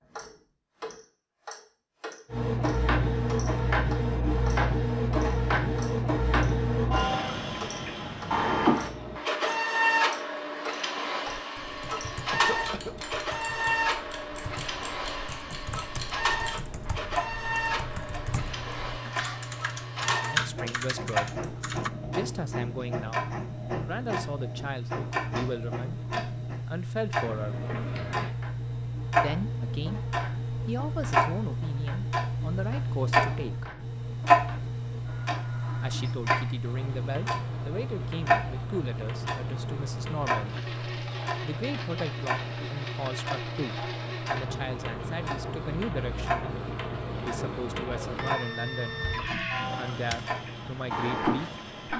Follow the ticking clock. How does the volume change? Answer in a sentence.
The loudness of the ticking clock goes up, then down.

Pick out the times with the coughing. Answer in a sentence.
The coughing can be heard from 12.3 to 12.9 s.